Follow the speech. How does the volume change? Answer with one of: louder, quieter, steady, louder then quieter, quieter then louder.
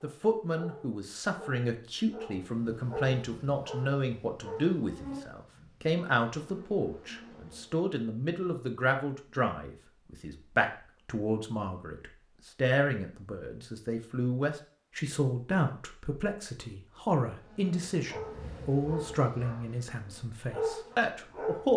steady.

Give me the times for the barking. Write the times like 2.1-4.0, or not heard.
0.0-4.8, 18.1-21.7.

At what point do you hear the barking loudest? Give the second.
21 s.